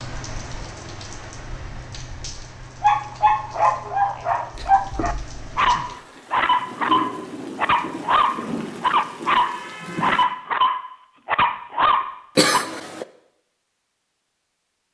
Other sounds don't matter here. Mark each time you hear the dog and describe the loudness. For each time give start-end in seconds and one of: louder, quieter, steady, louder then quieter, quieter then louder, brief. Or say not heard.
2.8-12.7 steady.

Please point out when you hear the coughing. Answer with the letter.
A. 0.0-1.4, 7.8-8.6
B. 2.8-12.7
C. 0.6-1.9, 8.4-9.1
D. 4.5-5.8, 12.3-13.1
D.